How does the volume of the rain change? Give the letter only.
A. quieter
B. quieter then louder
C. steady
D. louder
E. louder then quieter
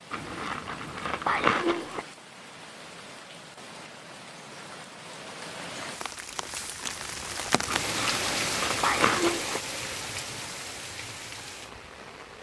E.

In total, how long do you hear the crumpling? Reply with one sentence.
The crumpling can be heard for 4 seconds in total.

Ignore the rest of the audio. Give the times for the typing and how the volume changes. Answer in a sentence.
You can't hear the typing here.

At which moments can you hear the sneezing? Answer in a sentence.
You can't hear the sneezing here.